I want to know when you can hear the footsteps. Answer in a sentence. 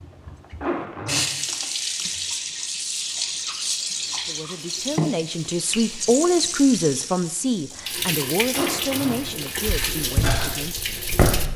You can hear the footsteps from 9.2 to 11.5 s.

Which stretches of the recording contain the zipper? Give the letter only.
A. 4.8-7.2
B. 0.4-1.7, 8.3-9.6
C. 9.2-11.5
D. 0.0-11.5
B.